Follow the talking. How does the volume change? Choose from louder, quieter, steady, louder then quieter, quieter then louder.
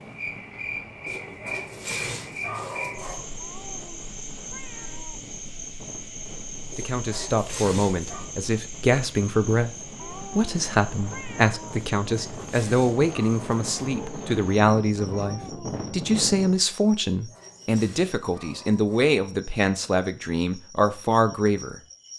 steady.